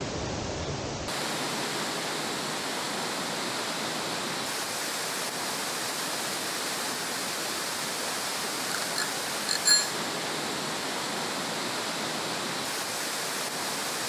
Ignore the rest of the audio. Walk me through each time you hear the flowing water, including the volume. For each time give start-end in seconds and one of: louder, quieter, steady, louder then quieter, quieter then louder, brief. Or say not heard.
0.0-14.0 steady.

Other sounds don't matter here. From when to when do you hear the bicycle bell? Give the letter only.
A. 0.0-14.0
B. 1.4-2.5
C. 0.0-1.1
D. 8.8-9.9
D.